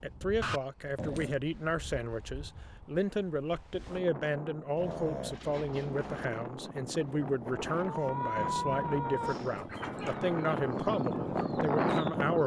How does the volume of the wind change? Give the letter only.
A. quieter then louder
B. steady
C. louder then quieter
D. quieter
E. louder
E.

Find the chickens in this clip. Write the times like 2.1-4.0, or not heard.
6.8-12.4.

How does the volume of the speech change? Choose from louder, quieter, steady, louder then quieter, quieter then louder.
steady.